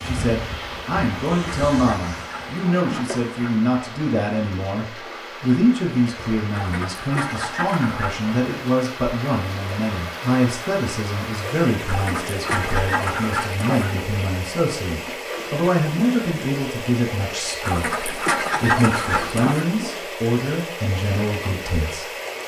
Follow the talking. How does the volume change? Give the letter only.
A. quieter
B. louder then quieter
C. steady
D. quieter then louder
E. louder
C.